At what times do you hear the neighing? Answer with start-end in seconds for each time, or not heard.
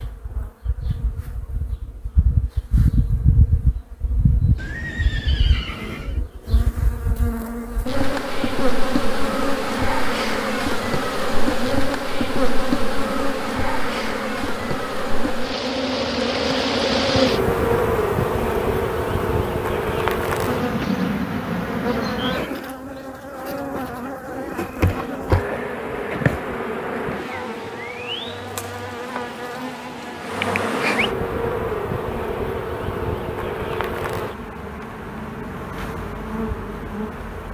4.5-6.2.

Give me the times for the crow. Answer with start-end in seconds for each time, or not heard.
not heard.